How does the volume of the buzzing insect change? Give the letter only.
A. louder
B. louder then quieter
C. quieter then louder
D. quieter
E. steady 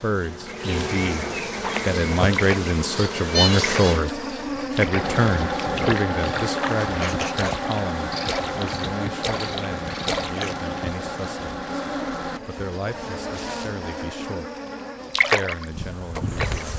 D.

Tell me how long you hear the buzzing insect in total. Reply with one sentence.
The buzzing insect can be heard for 17 seconds in total.